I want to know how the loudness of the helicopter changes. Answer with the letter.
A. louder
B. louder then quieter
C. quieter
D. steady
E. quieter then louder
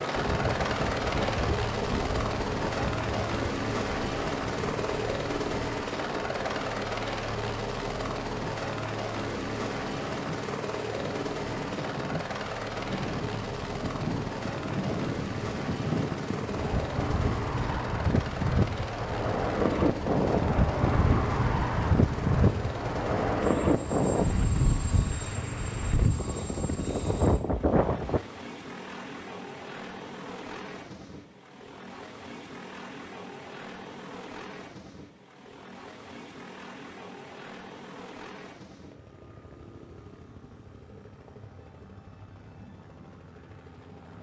C.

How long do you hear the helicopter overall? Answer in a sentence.
The helicopter can be heard for 44 seconds in total.